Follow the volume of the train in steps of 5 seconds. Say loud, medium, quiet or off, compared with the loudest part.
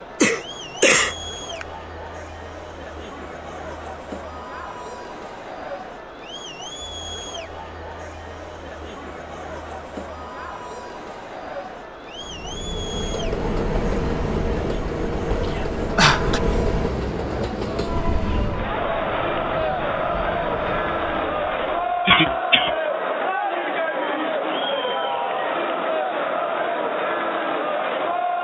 off, off, loud, loud, medium, off.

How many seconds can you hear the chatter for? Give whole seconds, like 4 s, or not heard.
28 s.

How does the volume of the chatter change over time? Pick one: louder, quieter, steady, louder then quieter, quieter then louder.
louder.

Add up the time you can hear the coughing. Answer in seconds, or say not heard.
3 s.